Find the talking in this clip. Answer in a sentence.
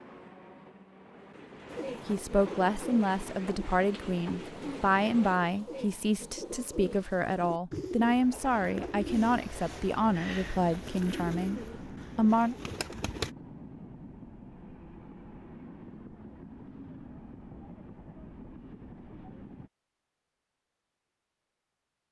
The talking can be heard from 2.0 to 12.6 s.